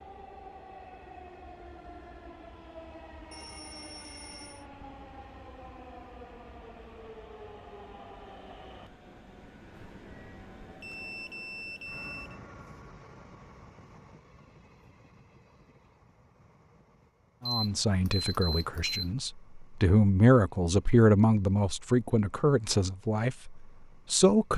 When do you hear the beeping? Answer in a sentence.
The beeping can be heard from 3.3 to 4.7 s, from 10.8 to 12.4 s and from 17.4 to 19.1 s.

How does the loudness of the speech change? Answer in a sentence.
The loudness of the speech goes up, then down.